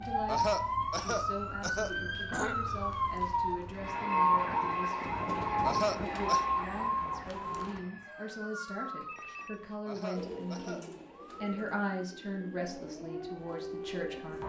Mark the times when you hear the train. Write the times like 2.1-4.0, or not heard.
3.7-8.6.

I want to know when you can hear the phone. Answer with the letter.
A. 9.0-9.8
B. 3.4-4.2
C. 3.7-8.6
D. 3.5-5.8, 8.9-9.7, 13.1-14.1
A.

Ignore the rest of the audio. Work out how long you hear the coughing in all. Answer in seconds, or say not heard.
4 s.